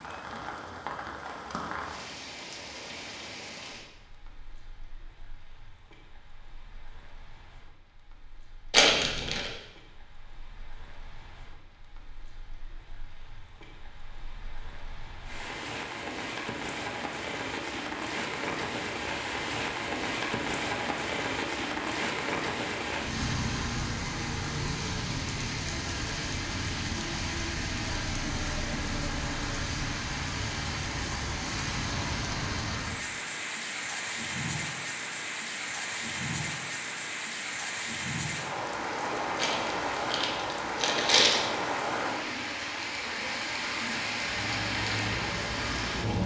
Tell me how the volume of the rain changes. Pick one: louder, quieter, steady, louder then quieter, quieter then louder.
louder.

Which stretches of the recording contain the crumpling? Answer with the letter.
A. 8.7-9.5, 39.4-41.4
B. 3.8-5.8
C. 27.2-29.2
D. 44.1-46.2
A.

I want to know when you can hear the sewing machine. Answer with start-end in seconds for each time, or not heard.
44.1-46.2.